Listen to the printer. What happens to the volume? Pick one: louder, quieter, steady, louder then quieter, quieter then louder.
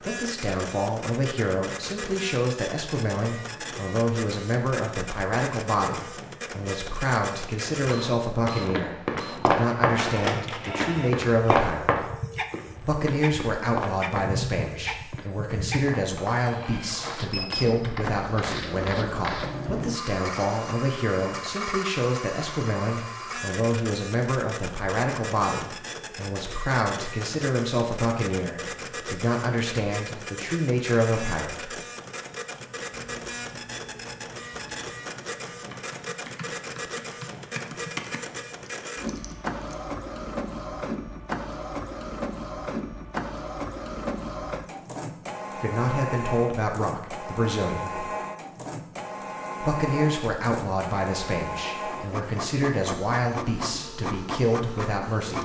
steady.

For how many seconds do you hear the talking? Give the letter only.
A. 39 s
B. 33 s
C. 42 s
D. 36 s
A.